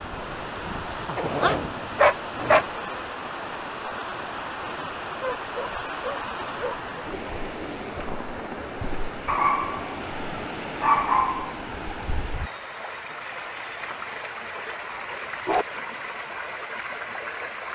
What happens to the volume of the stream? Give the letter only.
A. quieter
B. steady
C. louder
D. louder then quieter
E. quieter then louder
B.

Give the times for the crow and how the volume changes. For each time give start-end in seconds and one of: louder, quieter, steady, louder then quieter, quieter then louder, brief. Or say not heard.
not heard.